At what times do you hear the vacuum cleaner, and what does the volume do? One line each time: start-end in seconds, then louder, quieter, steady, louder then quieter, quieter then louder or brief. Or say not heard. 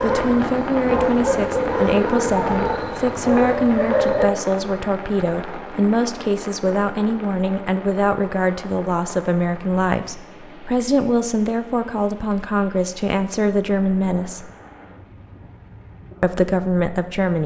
not heard.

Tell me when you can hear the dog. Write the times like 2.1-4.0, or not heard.
0.0-4.3.